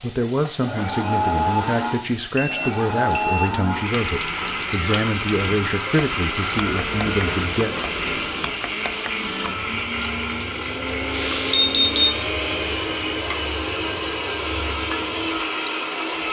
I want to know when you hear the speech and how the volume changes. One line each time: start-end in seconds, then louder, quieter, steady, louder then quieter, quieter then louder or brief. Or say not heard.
0.0-7.7 steady.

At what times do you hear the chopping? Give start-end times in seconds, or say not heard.
not heard.